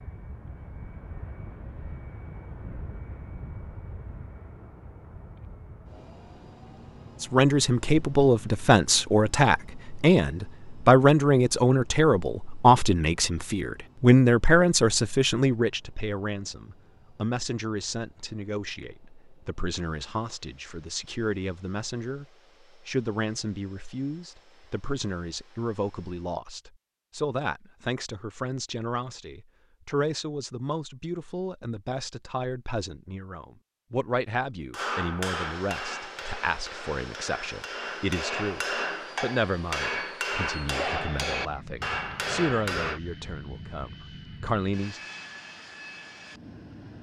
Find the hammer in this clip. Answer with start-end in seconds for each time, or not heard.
34.7-43.0.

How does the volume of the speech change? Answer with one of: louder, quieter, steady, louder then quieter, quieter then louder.
quieter.